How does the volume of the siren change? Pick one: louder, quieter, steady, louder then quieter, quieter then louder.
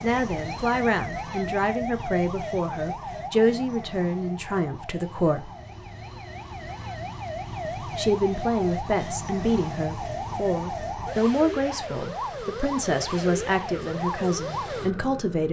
quieter then louder.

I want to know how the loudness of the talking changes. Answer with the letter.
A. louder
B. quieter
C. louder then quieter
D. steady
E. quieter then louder
D.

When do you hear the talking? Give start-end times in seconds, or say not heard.
0.0-5.5, 7.8-15.4.